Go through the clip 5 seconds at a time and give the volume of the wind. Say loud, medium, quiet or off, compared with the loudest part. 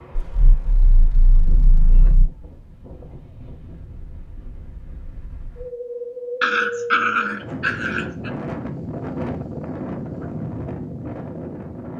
quiet, loud, loud.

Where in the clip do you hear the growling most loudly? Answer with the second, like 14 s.
7 s.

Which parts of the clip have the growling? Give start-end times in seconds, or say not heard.
0.1-2.3, 6.4-8.3.